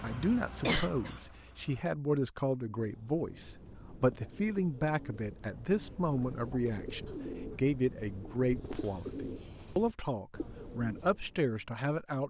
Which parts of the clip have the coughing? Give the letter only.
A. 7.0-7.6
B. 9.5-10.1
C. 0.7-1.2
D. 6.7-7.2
C.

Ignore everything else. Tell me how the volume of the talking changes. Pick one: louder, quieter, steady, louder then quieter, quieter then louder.
steady.